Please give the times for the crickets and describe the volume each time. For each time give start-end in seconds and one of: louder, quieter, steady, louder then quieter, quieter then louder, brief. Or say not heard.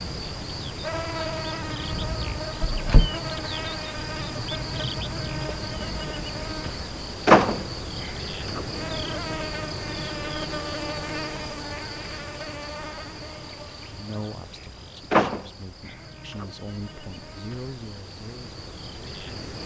0.0-19.6 quieter.